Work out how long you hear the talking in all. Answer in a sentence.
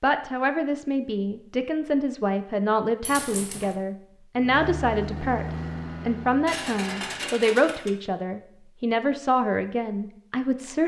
The talking can be heard for 11 seconds in total.